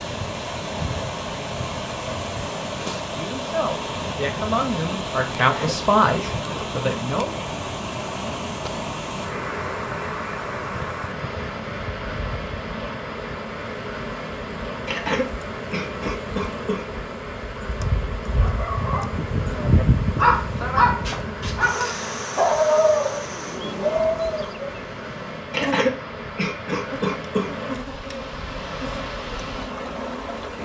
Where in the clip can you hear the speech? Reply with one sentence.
You can hear the speech from 3.1 to 7.5 s.